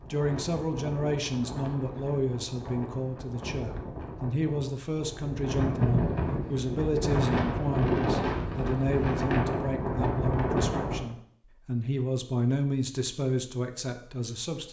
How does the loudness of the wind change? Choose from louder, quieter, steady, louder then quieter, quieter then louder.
louder.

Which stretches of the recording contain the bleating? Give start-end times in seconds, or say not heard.
not heard.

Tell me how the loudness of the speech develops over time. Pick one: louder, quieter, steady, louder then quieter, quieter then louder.
steady.